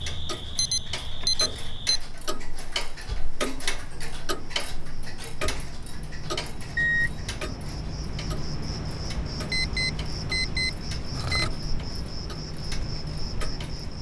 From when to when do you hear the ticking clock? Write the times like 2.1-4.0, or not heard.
0.0-13.9.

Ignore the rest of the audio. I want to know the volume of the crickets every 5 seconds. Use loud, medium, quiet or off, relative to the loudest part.
medium, loud, loud.